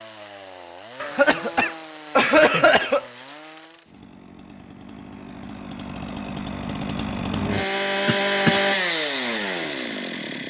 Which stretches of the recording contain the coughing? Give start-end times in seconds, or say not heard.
1.0-3.0, 8.1-8.6.